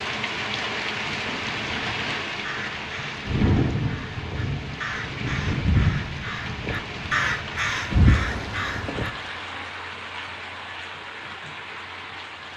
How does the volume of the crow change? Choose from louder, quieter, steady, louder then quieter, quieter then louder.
louder.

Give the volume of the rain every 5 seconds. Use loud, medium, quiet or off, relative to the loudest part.
loud, loud, medium.